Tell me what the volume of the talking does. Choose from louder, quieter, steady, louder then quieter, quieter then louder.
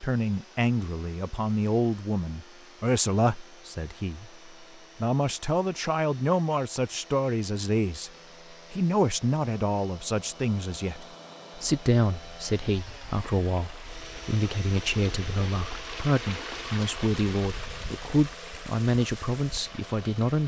steady.